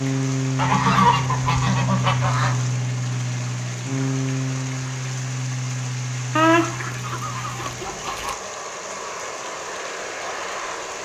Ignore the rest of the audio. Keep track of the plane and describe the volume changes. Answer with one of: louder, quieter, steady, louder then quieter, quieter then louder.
quieter.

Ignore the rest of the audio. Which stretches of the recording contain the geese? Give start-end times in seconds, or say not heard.
0.6-2.5, 6.3-8.3.